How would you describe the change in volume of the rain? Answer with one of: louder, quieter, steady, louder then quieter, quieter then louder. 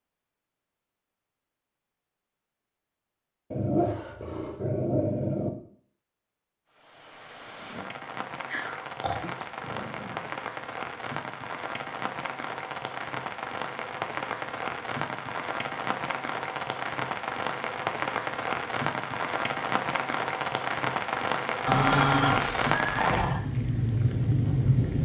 louder.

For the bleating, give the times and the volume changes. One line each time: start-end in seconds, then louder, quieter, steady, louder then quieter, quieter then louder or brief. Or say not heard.
not heard.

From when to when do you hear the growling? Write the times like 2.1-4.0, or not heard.
3.5-5.5, 8.4-10.3, 21.6-23.4.